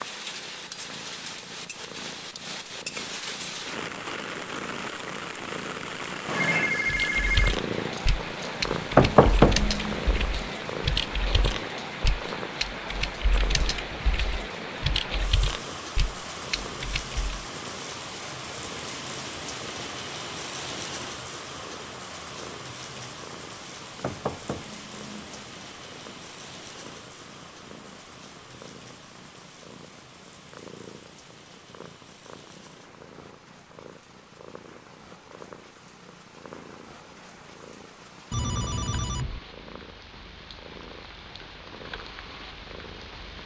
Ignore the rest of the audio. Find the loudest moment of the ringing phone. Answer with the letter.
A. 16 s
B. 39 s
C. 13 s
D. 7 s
D.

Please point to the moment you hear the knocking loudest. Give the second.
9 s.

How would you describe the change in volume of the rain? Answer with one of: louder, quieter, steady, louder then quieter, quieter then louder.
quieter.